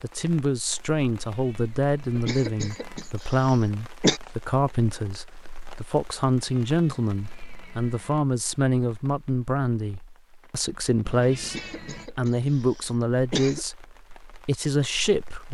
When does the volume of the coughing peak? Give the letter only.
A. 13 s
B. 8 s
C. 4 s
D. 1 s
C.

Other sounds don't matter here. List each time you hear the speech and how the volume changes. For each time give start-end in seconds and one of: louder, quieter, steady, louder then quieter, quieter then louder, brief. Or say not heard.
0.0-15.4 steady.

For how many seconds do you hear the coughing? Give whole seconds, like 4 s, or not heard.
4 s.